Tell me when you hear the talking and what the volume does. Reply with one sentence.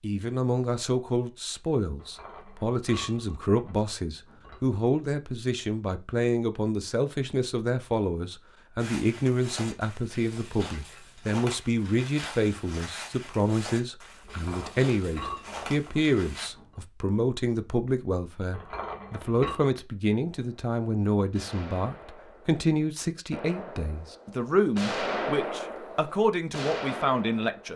You can hear the talking from 0.0 to 27.7 s, at a steady volume.